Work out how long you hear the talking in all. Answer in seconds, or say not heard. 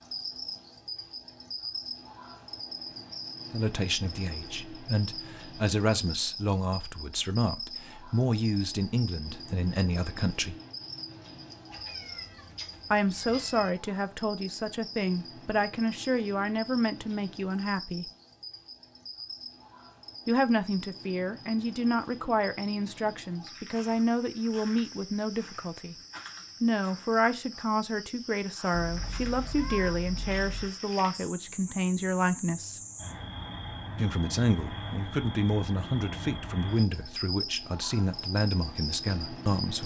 30 s.